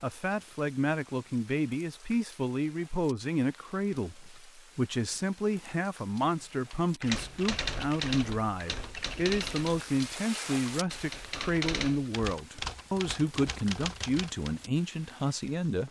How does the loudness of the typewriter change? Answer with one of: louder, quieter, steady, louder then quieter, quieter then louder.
quieter.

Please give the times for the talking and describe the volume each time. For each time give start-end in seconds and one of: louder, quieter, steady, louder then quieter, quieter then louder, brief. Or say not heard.
0.0-15.8 steady.